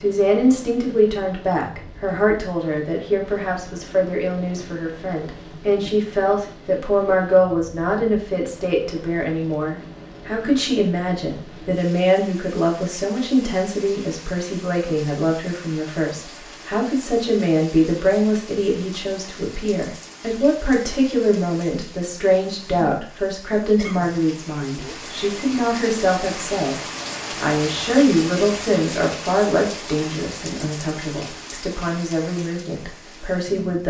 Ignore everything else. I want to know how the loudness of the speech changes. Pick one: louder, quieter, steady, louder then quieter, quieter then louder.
steady.